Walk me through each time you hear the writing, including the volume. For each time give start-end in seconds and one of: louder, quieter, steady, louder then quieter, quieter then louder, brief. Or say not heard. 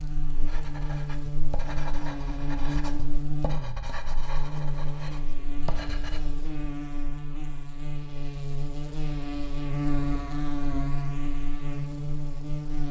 0.4-6.2 steady.